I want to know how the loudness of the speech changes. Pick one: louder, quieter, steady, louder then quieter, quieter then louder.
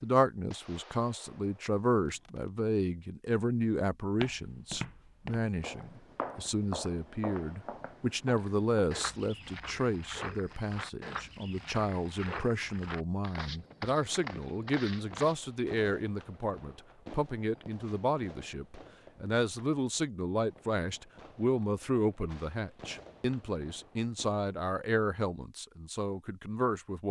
steady.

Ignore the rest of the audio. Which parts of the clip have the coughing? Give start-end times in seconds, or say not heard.
not heard.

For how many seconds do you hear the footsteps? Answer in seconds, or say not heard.
11 s.